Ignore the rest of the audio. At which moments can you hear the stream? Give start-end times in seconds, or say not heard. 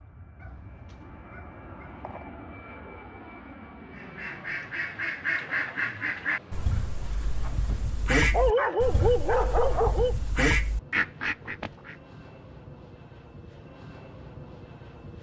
not heard.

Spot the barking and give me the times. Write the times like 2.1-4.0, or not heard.
0.4-2.2, 7.7-10.2.